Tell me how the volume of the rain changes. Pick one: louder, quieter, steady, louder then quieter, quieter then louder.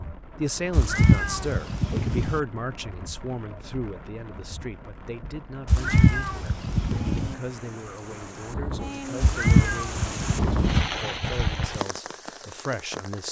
louder.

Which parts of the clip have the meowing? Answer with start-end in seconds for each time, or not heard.
0.7-2.4, 5.7-7.3, 9.2-10.8.